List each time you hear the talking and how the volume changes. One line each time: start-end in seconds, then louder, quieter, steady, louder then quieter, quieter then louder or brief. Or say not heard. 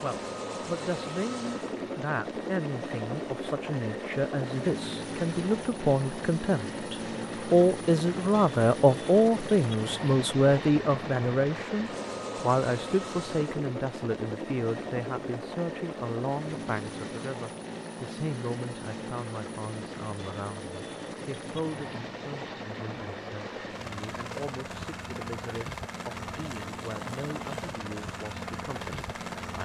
0.0-29.6 louder then quieter.